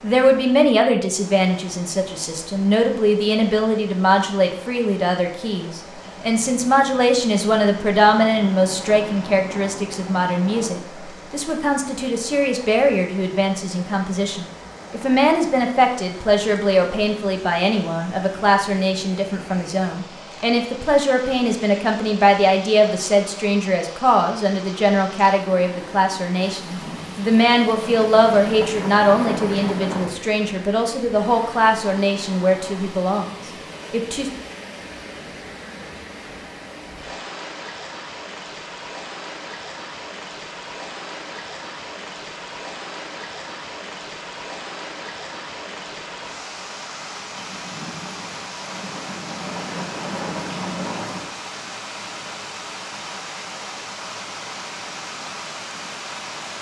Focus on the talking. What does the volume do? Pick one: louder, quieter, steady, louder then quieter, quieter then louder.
steady.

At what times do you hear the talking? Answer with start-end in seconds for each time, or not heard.
0.0-34.3.